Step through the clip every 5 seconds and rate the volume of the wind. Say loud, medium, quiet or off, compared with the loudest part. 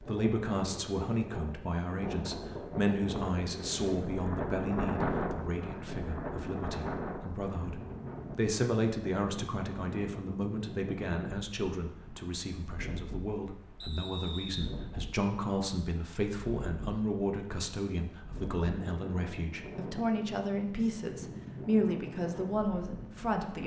loud, loud, medium, medium, medium.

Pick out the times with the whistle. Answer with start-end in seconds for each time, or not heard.
13.8-14.7.